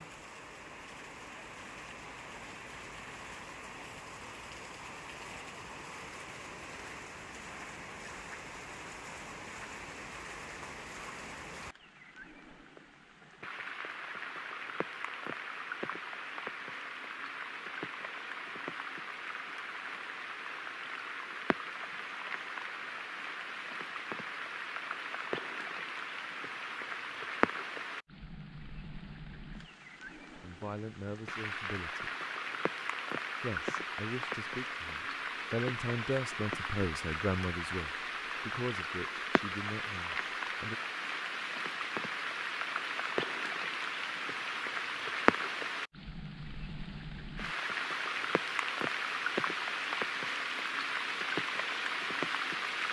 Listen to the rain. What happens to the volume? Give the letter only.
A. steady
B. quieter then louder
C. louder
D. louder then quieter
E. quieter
C.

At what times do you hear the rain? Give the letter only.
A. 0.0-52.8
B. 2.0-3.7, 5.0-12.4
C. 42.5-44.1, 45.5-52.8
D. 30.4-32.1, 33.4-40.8
A.